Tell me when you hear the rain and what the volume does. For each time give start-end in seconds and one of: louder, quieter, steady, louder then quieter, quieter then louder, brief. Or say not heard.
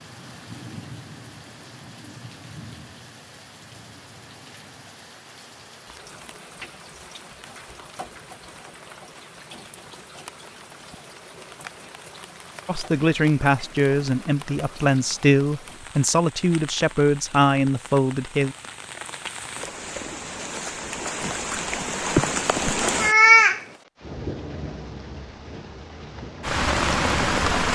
0.0-27.7 louder.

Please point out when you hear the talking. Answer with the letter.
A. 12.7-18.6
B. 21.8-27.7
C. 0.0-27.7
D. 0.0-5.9
A.